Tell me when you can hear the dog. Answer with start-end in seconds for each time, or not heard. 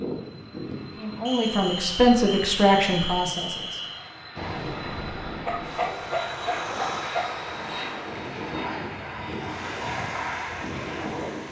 5.5-7.3.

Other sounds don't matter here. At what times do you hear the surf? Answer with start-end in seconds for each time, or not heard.
4.3-11.4.